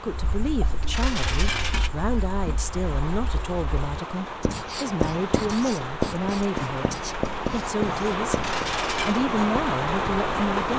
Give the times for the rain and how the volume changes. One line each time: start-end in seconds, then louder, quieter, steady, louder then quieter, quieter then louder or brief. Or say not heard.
0.0-10.7 louder.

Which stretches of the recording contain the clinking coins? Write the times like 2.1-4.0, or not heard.
0.9-1.9, 8.4-9.2.